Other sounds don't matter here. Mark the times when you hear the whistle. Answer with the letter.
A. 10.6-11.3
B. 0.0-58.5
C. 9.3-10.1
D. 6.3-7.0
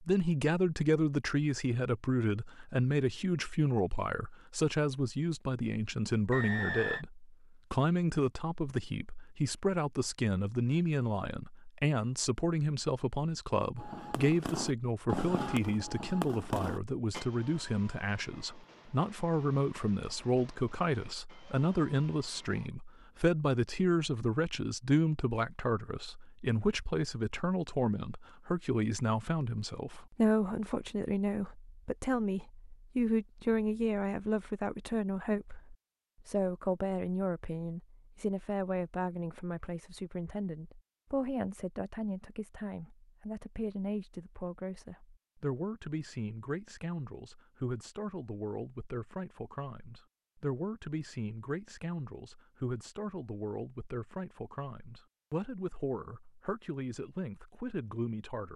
D.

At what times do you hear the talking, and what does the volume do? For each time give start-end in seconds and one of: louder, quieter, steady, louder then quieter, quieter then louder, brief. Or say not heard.
0.0-58.5 quieter.